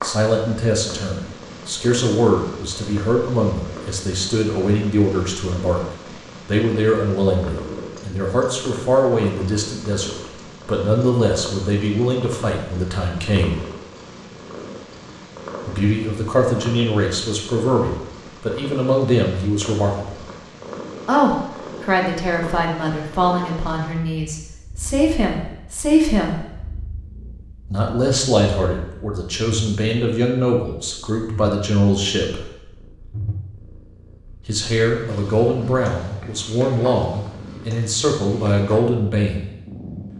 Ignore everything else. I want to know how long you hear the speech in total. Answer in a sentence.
The speech can be heard for 33 seconds in total.